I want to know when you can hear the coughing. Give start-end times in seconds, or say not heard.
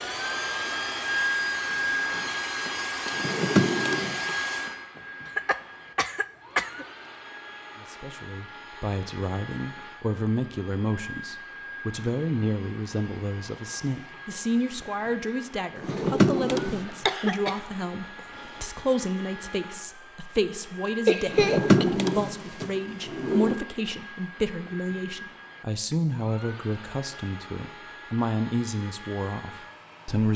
5.2-6.8, 16.9-18.6, 21.1-21.9.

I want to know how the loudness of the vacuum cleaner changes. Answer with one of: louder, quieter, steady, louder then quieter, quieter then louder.
quieter.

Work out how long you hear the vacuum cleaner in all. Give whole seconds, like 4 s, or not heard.
30 s.